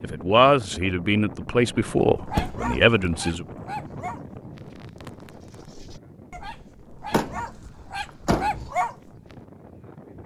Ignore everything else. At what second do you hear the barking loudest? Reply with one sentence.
The loudest moment of the barking is at 9 seconds.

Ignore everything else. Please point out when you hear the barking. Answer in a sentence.
You can hear the barking from 2.1 to 9.1 s.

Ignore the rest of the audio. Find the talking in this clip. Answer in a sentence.
The talking can be heard from 0.0 to 3.5 s.